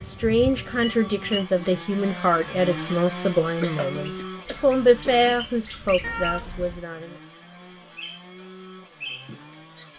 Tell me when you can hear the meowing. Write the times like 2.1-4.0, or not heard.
0.0-1.4, 6.0-6.8.